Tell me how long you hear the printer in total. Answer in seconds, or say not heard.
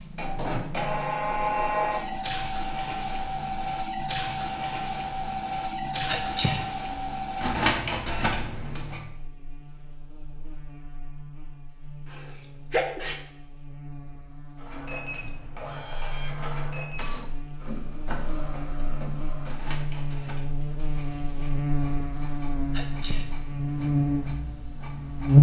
20 s.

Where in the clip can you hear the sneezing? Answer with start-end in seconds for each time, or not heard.
6.0-6.7, 12.1-13.2, 22.7-23.3.